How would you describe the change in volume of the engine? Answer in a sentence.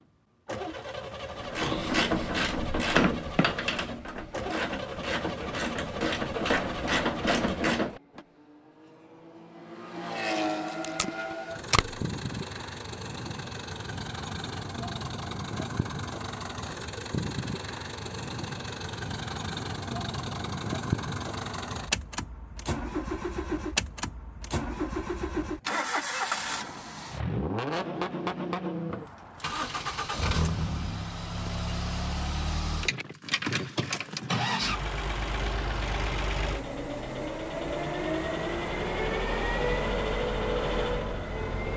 The volume of the engine goes up.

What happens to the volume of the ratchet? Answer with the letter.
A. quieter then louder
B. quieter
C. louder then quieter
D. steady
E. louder
A.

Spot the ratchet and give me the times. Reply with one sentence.
You can hear the ratchet from 1.4 to 8.2 s.